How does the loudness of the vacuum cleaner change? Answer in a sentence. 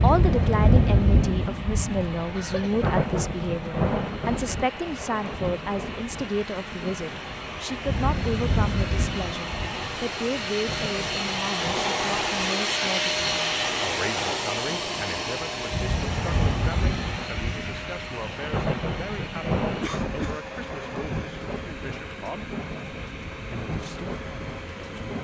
The volume of the vacuum cleaner goes up, then down.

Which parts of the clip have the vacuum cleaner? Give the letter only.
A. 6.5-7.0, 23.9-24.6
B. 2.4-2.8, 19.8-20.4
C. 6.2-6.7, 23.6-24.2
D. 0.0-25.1
D.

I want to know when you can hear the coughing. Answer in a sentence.
The coughing can be heard from 2.4 to 2.8 s and from 19.8 to 20.4 s.